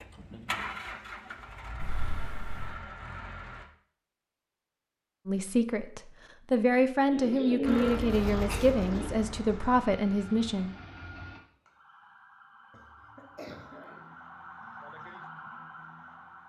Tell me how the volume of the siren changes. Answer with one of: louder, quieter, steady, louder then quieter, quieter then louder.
louder.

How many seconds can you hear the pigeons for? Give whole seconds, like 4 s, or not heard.
2 s.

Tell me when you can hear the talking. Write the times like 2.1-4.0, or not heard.
5.2-10.7.